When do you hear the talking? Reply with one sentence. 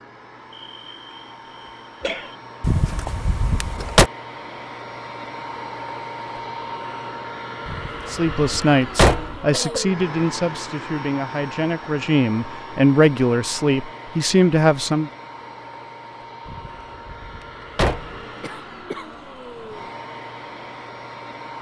You can hear the talking from 8.1 to 15.1 s.